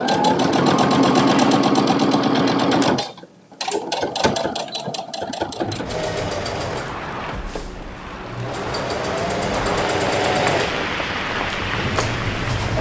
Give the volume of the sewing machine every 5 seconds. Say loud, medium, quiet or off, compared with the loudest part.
loud, medium, medium.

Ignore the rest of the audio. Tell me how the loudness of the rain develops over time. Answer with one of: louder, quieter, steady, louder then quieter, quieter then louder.
louder.